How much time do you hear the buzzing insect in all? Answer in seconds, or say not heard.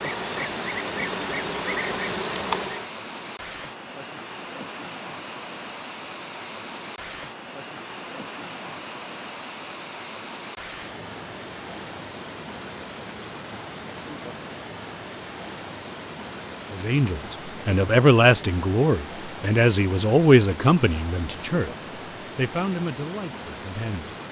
3 s.